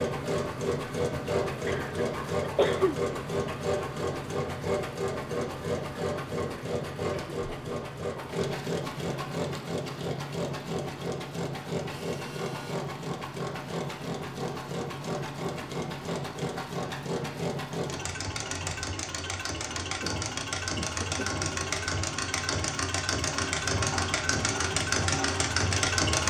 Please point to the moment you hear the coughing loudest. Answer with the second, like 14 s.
3 s.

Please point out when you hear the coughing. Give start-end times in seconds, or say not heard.
1.6-3.0, 19.8-21.4.